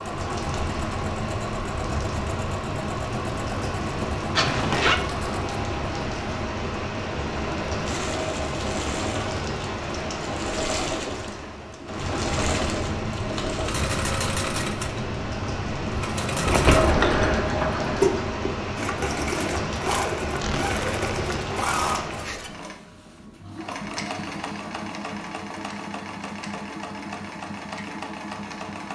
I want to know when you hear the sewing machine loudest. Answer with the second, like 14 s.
18 s.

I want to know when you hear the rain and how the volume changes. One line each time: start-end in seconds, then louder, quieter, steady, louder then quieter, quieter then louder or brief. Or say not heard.
0.0-22.6 steady.